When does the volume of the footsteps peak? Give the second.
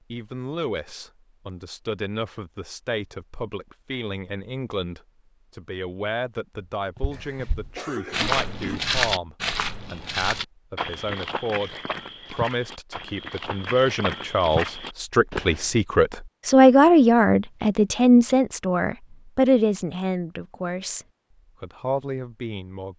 9 s.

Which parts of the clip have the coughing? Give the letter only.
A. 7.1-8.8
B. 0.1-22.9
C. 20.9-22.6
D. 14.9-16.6
A.